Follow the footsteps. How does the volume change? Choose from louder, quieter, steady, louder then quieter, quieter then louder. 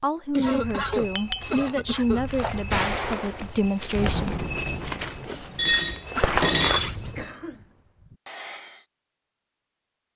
louder.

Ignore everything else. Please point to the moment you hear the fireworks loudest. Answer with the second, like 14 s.
3 s.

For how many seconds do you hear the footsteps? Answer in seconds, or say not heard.
7 s.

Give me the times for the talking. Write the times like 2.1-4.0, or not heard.
0.0-4.6.